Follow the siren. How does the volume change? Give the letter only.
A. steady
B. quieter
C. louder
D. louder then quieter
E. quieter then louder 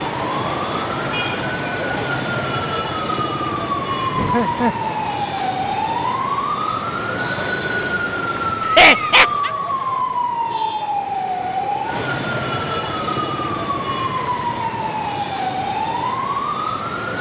A.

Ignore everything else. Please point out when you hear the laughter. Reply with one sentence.
The laughter can be heard from 4.2 to 4.8 s and from 8.6 to 9.5 s.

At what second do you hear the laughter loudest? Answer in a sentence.
The loudest moment of the laughter is at 9 seconds.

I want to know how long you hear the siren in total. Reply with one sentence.
You can hear the siren for 17 seconds altogether.